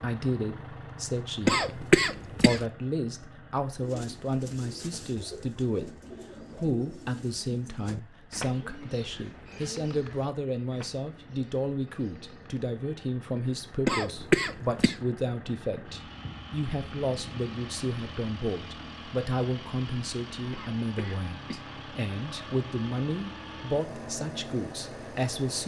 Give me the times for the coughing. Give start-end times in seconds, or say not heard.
1.4-2.6, 13.8-14.9, 20.5-21.7.